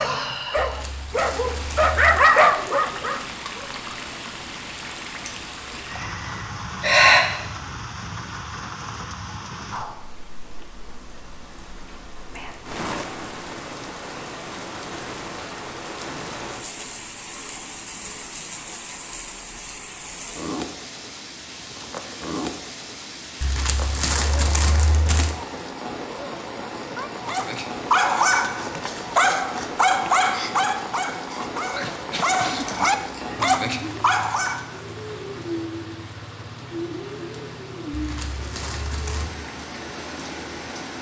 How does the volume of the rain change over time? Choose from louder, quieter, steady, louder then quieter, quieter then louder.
steady.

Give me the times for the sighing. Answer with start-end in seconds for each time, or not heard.
5.2-7.2, 32.6-33.4.